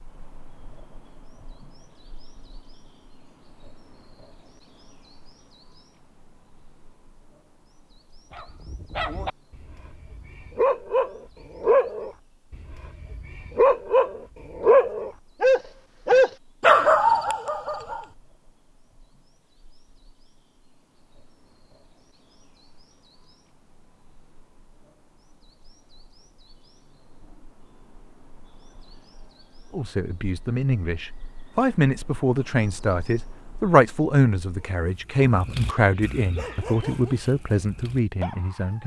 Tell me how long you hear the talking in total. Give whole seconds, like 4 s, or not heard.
9 s.